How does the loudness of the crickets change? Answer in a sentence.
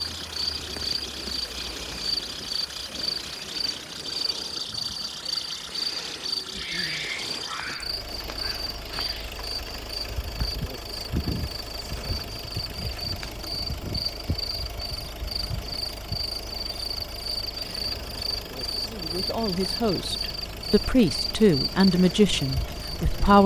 The volume of the crickets stays about the same.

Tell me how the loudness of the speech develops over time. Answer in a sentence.
The volume of the speech goes up, then down.